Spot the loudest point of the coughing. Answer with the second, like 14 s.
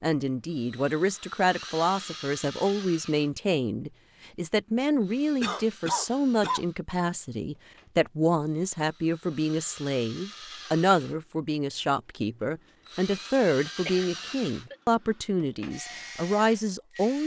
6 s.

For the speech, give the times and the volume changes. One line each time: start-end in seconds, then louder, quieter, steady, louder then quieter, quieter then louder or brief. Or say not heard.
0.0-17.2 steady.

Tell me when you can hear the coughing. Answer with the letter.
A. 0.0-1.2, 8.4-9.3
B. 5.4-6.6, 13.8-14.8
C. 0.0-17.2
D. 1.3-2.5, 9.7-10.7
B.